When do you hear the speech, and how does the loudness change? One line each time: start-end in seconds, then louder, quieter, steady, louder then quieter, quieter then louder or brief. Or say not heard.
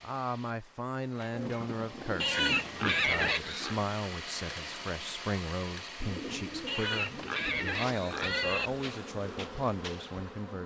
0.0-10.6 steady.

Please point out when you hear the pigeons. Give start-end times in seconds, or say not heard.
1.3-3.4, 6.0-8.0.